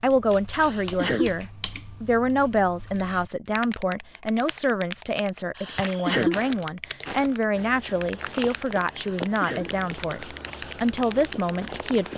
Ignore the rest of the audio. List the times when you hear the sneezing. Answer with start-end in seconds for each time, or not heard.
0.5-1.4, 5.5-6.4, 8.9-9.7.